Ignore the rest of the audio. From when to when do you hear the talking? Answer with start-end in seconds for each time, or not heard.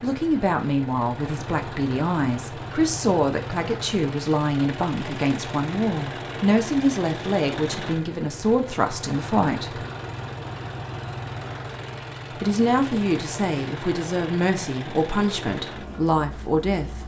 0.0-9.8, 12.4-17.0.